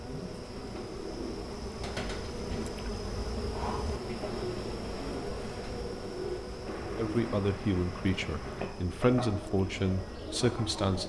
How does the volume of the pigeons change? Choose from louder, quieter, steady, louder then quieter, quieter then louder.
steady.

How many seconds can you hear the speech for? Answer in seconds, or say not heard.
4 s.